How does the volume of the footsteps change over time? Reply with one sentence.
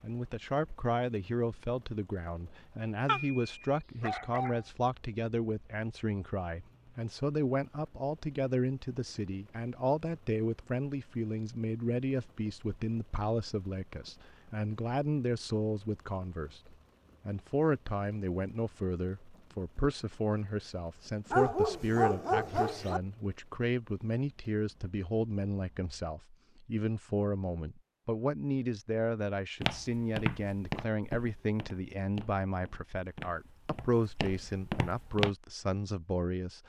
The loudness of the footsteps goes down, then up.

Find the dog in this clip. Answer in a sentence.
The dog can be heard from 3.0 to 4.6 s and from 21.3 to 23.0 s.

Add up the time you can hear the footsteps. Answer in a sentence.
You can hear the footsteps for 6 seconds altogether.